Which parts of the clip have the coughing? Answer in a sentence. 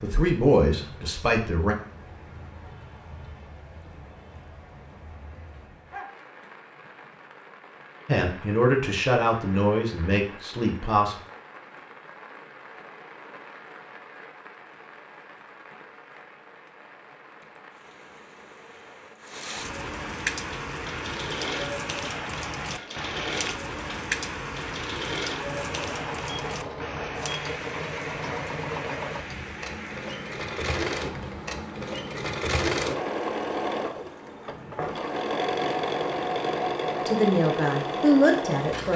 You can't hear the coughing here.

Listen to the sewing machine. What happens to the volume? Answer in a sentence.
The volume of the sewing machine goes up.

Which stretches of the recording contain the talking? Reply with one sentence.
You can hear the talking from 0.0 to 1.8 s, from 8.1 to 11.2 s and from 37.0 to 38.9 s.